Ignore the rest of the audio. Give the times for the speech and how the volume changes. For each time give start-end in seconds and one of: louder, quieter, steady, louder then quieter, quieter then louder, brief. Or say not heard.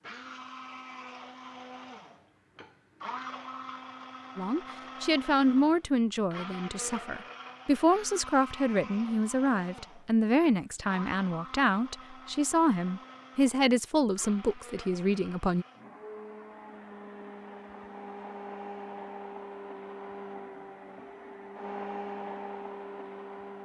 4.3-15.7 steady.